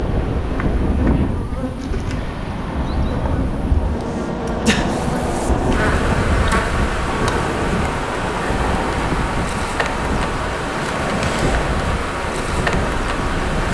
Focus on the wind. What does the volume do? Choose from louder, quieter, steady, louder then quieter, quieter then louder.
steady.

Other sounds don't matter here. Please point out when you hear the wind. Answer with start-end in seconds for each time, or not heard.
0.0-13.7.